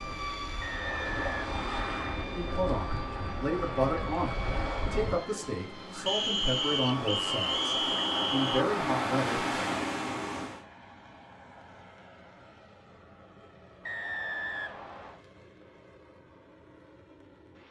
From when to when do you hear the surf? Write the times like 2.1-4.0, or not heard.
0.0-10.7.